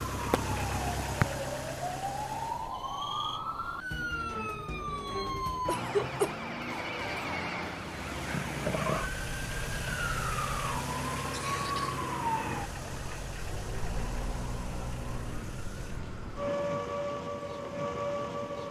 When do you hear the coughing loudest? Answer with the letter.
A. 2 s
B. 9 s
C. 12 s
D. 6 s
D.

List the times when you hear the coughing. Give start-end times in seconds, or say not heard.
5.7-6.3, 11.2-12.0.